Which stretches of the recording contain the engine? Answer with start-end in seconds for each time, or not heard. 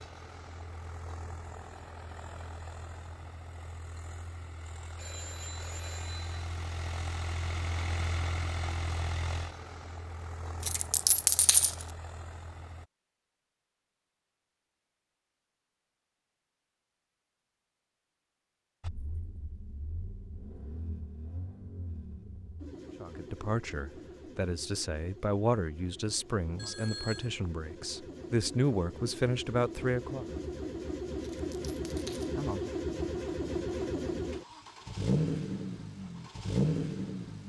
0.0-12.8, 18.8-37.4.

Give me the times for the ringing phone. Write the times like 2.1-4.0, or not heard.
5.0-6.5, 26.6-27.3.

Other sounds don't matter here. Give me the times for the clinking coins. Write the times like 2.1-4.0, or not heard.
10.6-11.8, 31.2-32.4.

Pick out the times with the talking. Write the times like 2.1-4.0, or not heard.
23.0-30.2.